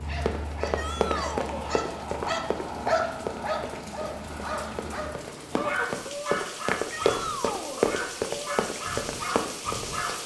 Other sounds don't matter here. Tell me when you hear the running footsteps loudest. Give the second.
8 s.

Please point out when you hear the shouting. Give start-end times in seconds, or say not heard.
0.8-1.7, 6.9-7.8.